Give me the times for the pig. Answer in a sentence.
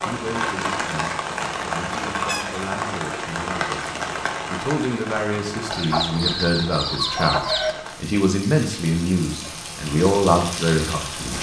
You can't hear the pig here.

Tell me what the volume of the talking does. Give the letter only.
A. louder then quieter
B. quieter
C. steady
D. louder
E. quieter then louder
D.